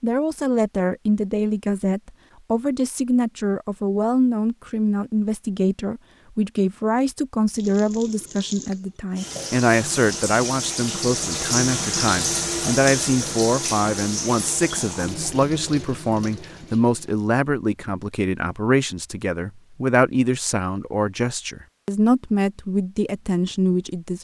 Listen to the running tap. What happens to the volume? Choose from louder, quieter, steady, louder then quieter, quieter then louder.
louder then quieter.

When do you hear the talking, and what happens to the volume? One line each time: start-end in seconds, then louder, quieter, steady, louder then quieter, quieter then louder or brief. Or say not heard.
0.0-24.1 steady.